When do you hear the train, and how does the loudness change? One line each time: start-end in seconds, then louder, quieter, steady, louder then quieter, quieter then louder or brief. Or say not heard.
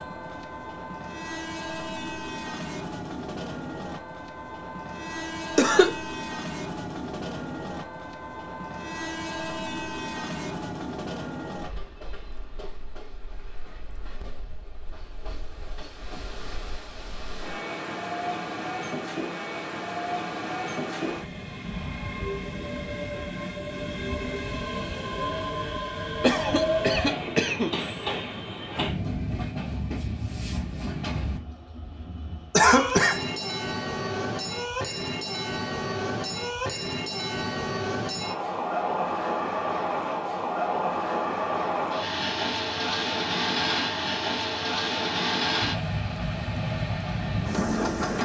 0.0-48.2 louder.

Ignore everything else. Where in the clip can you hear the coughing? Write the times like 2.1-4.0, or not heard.
5.5-6.0, 26.2-27.8, 32.5-33.2.